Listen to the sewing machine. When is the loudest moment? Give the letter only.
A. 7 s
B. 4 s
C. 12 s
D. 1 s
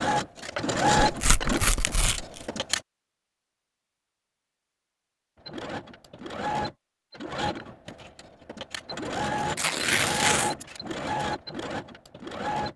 D.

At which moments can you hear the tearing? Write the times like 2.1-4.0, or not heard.
1.0-2.5, 9.6-10.6.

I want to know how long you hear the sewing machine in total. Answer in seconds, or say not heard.
10 s.